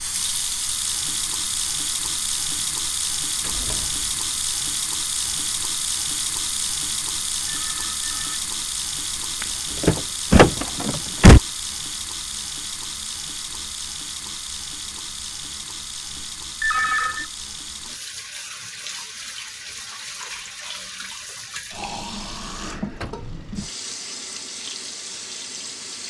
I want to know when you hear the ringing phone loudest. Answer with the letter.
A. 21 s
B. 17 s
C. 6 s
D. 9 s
B.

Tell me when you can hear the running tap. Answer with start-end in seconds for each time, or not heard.
0.0-26.0.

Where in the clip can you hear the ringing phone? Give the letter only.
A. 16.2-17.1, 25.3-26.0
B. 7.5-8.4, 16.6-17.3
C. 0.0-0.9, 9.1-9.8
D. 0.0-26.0
B.